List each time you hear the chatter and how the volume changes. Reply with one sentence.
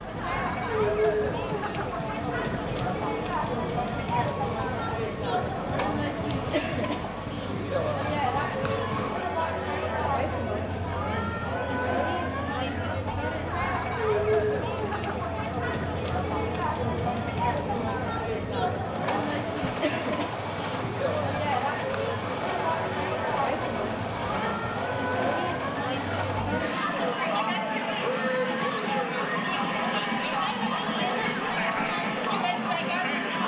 The chatter can be heard from 0.0 to 33.4 s, at a steady volume.